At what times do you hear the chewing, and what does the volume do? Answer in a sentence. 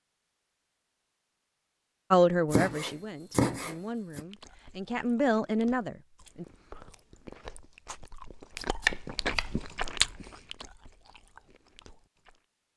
You can hear the chewing from 4.2 to 12.4 s, getting louder then quieter.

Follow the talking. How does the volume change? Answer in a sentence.
The loudness of the talking goes down, then up.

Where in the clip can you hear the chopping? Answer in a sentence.
You can hear the chopping from 2.5 to 4.2 s and from 8.6 to 9.5 s.